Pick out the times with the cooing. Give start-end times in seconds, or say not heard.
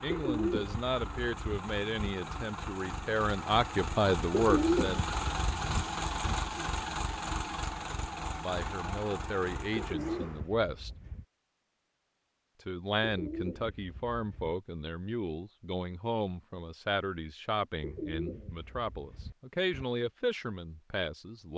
0.1-2.1, 4.3-6.3, 9.8-11.2, 13.0-14.6, 17.8-19.9.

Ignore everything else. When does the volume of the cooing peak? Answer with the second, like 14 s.
5 s.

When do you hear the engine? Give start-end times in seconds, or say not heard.
0.0-10.5.